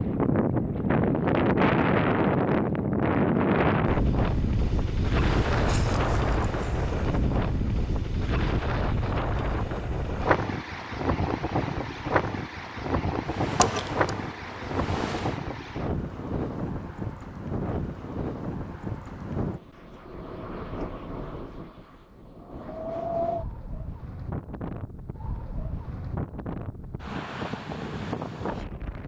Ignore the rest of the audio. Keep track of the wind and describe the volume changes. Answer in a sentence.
The loudness of the wind goes down.